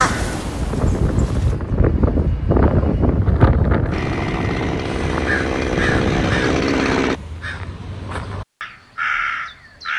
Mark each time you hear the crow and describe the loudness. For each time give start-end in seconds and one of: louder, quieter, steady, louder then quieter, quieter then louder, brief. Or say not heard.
0.0-1.6 brief
4.9-9.9 quieter then louder.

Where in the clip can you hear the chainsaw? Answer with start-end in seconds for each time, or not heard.
3.9-7.2.